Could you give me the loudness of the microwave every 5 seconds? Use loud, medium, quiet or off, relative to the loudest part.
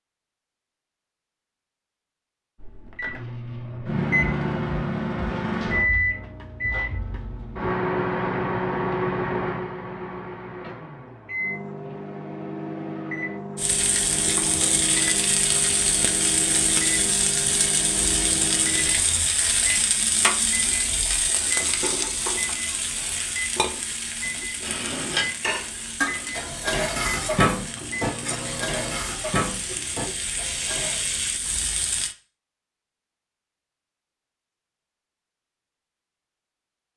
loud, loud, medium, medium, medium, medium, off, off.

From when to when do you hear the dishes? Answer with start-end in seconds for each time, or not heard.
24.6-31.0.